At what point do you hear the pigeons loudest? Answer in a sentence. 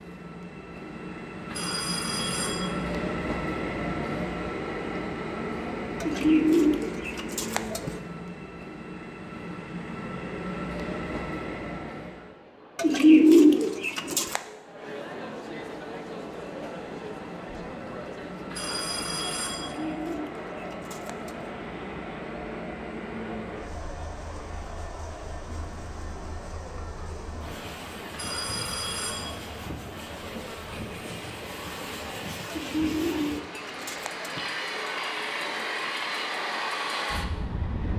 The volume of the pigeons peaks at 13 seconds.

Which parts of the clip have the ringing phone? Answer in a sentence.
The ringing phone can be heard from 1.5 to 2.7 s, from 18.5 to 19.7 s and from 28.1 to 29.4 s.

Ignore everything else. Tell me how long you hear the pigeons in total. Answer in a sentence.
You can hear the pigeons for 7 seconds altogether.